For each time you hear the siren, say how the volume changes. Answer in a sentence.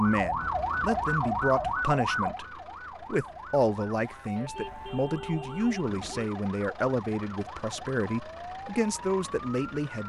The siren can be heard from 0.0 to 9.9 s, getting quieter.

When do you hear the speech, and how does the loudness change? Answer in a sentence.
You can hear the speech from 0.0 to 10.0 s, at a steady volume.